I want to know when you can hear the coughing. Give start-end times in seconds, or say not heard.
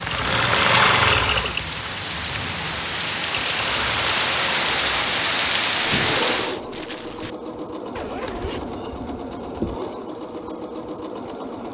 not heard.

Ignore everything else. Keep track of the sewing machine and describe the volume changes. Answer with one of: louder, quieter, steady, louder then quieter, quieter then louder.
quieter.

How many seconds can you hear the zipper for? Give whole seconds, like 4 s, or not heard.
3 s.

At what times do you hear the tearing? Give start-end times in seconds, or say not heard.
5.8-7.3.